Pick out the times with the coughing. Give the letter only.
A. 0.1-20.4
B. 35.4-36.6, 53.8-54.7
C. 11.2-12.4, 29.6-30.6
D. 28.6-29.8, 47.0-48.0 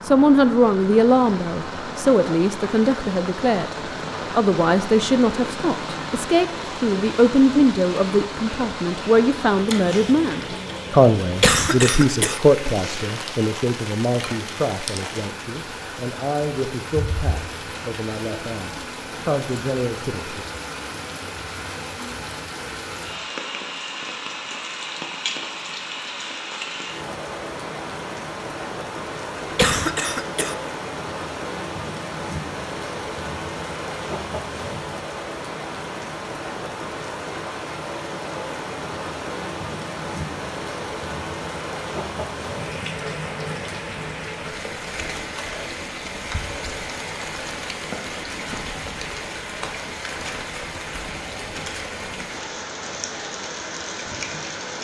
C.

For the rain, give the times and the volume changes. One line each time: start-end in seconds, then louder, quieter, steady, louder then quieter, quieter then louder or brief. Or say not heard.
0.0-54.7 steady.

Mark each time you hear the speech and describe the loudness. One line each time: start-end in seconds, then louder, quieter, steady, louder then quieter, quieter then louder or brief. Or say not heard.
0.1-20.4 quieter.